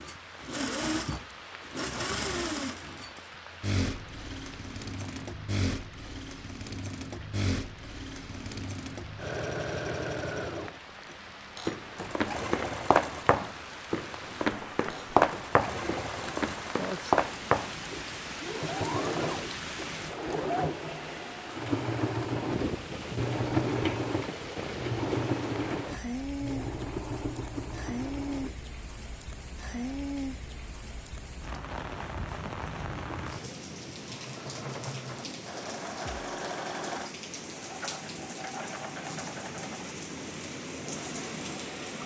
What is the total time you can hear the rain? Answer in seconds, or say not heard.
42 s.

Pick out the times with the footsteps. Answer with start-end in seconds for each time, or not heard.
11.7-17.8.